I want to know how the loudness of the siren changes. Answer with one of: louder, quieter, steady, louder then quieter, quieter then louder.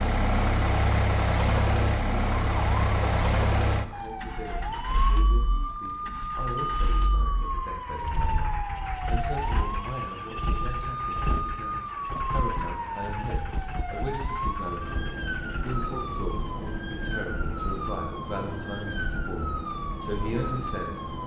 steady.